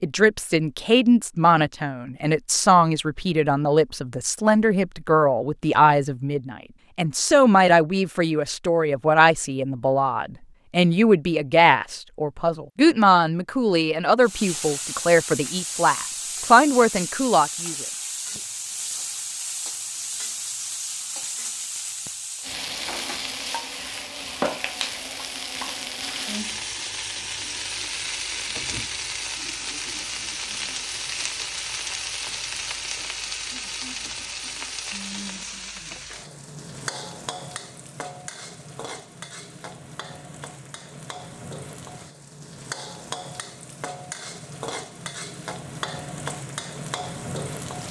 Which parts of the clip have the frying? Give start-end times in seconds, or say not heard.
14.2-47.8.